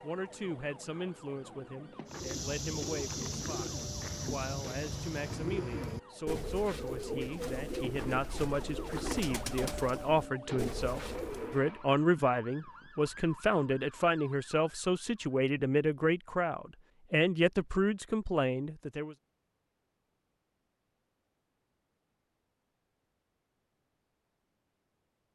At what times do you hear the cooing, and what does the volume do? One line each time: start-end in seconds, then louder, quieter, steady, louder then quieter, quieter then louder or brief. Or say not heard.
2.0-11.6 steady.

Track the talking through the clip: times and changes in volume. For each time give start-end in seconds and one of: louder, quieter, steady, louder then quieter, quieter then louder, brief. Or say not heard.
0.0-19.1 louder.